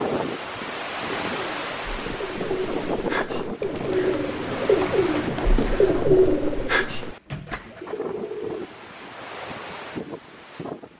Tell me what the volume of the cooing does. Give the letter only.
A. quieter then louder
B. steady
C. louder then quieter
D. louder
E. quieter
C.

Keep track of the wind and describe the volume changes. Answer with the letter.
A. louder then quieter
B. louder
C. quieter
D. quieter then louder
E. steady
C.